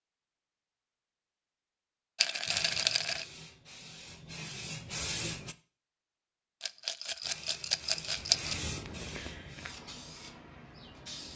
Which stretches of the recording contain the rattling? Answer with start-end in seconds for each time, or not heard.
2.1-3.2, 6.6-8.6.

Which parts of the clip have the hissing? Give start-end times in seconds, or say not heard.
2.5-5.5, 7.2-11.3.